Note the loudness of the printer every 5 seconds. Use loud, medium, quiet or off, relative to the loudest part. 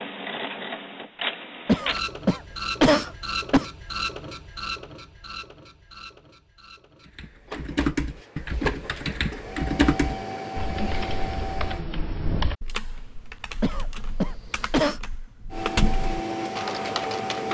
loud, medium, loud, loud.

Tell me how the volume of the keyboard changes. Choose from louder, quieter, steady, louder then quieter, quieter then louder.
quieter then louder.